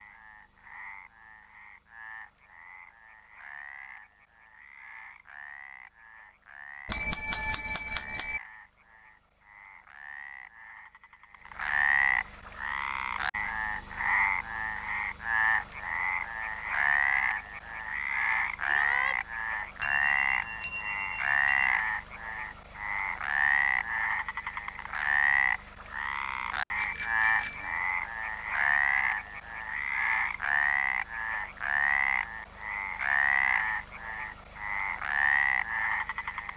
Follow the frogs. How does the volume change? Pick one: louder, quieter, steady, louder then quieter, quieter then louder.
louder.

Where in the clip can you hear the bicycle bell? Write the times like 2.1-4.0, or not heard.
6.8-8.4, 19.8-21.7, 26.8-27.8.